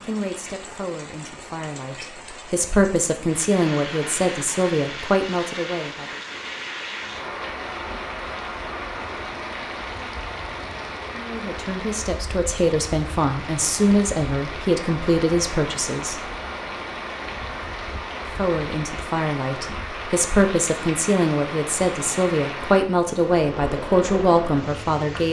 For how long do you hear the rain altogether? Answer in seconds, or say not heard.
25 s.